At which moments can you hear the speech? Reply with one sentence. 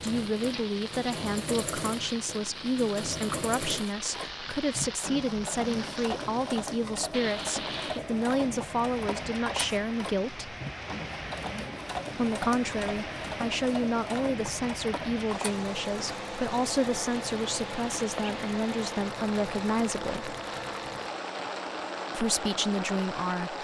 The speech can be heard from 0.0 to 10.5 s, from 12.2 to 20.4 s and from 22.1 to 23.5 s.